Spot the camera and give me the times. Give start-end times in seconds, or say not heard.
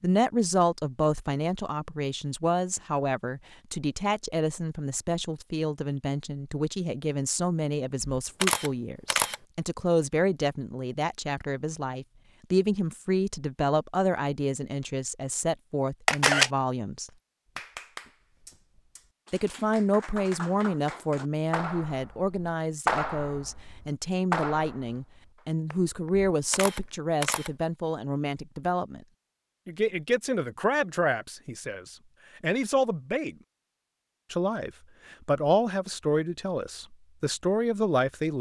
8.0-9.3, 16.1-16.5, 26.3-27.5.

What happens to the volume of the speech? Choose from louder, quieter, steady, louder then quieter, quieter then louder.
steady.